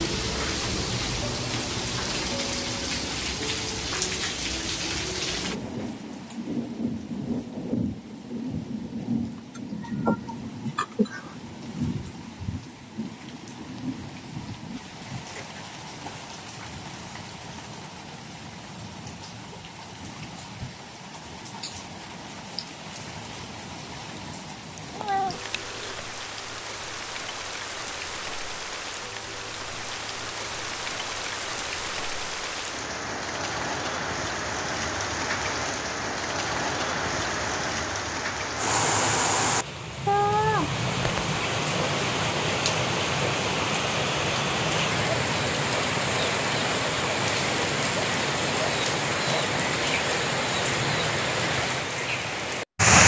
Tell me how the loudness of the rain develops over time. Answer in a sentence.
The loudness of the rain goes down, then up.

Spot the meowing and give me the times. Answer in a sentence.
You can hear the meowing from 9.6 to 11.3 s, from 24.8 to 26.1 s and from 40.0 to 41.4 s.